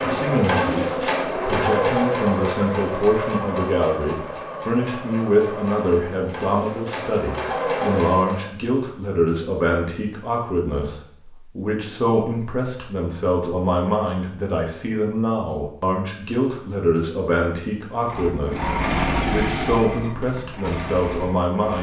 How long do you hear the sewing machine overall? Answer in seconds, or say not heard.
12 s.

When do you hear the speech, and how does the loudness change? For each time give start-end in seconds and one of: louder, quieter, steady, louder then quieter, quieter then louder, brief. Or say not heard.
0.0-21.7 steady.